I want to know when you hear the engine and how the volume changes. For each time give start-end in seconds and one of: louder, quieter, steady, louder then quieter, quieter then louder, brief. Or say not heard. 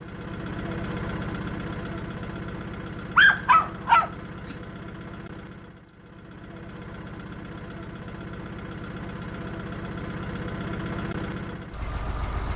0.0-12.5 quieter then louder.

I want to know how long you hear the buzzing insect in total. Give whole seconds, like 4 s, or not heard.
not heard.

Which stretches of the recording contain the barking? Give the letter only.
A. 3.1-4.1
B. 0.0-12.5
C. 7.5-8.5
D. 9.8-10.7
A.